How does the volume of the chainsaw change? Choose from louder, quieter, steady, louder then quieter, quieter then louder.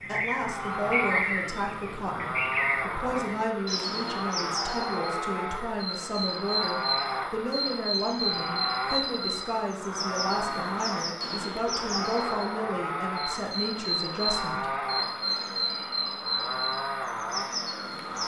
steady.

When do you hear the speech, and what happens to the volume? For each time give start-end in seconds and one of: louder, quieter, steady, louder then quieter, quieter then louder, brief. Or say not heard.
0.1-14.7 steady.